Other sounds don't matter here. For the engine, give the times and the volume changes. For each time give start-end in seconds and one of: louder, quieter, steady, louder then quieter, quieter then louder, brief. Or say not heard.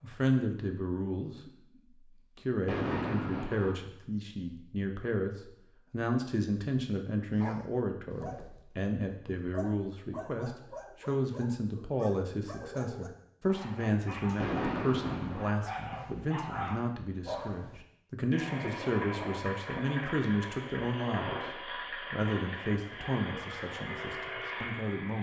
18.3-25.1 steady.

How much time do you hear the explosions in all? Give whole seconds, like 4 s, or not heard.
2 s.